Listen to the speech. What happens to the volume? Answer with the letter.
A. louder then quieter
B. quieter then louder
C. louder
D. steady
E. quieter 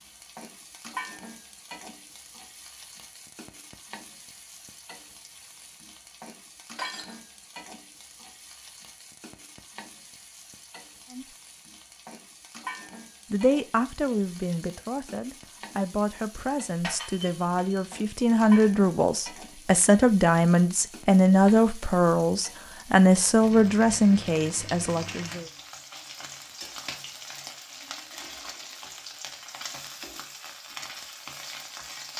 C.